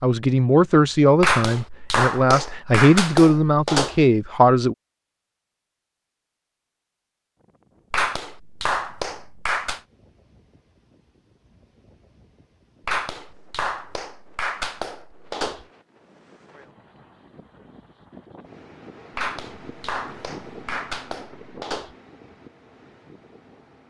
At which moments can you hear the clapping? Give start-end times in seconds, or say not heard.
1.2-4.0, 7.9-9.8, 12.8-15.7, 19.1-21.9.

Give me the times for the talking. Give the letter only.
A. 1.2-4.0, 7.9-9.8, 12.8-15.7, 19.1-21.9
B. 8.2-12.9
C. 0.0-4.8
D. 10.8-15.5
C.